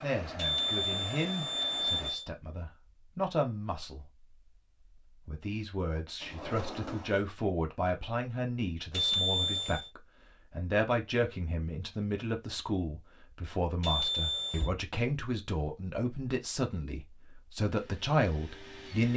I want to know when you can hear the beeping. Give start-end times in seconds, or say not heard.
0.3-2.2, 8.9-9.9, 13.8-14.7.